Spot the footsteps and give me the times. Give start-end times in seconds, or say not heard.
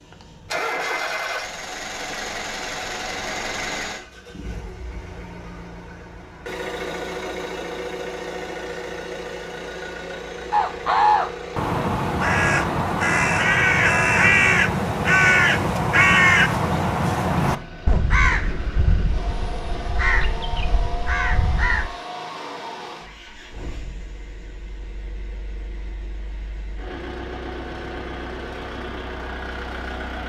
not heard.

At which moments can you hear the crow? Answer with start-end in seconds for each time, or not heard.
10.5-21.9.